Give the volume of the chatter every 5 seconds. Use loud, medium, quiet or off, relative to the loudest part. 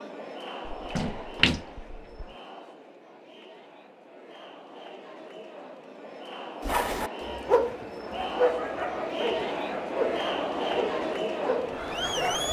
quiet, medium, loud.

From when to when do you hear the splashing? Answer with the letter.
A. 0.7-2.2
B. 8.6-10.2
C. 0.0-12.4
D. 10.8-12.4
A.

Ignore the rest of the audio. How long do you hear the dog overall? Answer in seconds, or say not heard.
6 s.